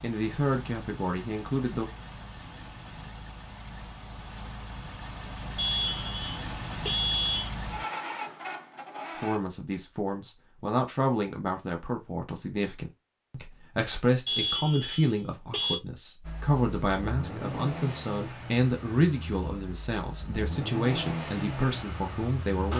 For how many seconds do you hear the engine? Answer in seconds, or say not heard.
16 s.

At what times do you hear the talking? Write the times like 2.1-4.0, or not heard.
0.0-1.9, 9.2-22.7.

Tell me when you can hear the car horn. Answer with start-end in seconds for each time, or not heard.
5.5-7.5, 14.2-15.8.